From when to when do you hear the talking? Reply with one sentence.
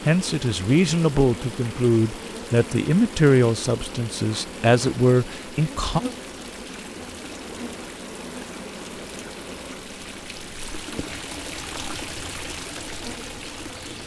You can hear the talking from 0.1 to 6.0 s.